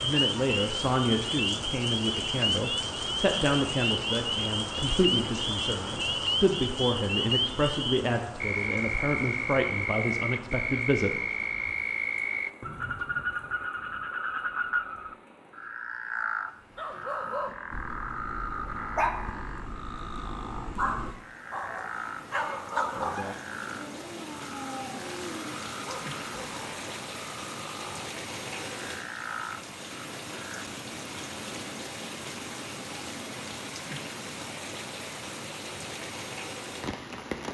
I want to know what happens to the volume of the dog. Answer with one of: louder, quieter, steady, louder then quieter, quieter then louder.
louder then quieter.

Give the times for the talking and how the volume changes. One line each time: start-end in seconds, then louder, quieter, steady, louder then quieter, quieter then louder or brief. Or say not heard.
0.0-11.2 steady.